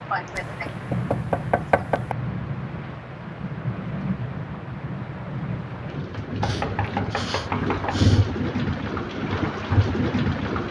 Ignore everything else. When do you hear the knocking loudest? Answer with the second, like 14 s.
2 s.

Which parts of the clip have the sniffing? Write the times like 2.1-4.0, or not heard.
0.1-0.8, 6.4-8.2.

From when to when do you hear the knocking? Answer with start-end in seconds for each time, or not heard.
0.3-2.1, 6.4-8.0.